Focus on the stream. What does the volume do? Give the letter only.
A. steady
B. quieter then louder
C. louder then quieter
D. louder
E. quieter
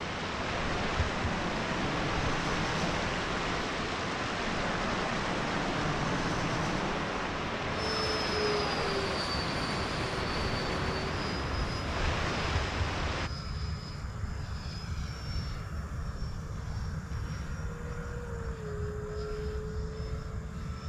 A.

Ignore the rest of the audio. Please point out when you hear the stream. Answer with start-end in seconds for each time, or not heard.
0.0-13.3.